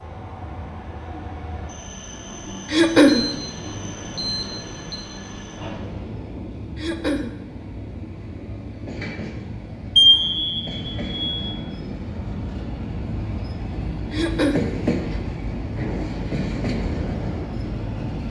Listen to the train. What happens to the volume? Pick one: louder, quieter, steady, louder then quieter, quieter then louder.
louder.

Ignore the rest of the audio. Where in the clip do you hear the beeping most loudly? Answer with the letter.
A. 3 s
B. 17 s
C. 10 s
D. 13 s
C.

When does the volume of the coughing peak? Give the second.
3 s.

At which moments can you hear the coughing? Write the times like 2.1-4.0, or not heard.
2.7-3.2, 6.8-7.3, 14.1-14.7.